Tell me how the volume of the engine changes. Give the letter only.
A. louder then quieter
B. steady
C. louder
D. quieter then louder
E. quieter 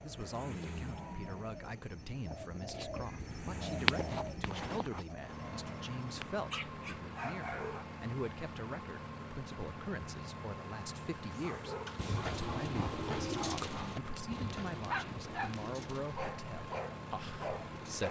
B.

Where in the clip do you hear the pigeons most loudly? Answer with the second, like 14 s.
4 s.